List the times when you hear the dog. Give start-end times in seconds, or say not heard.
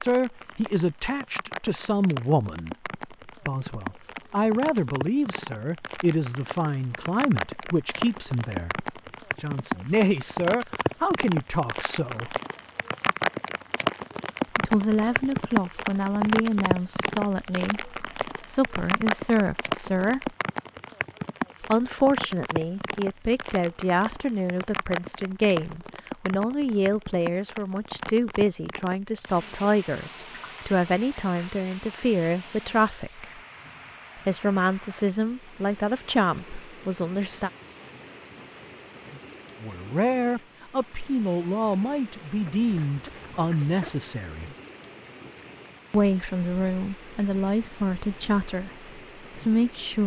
not heard.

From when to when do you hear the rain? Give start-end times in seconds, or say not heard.
0.0-50.0.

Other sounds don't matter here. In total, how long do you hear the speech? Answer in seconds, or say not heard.
42 s.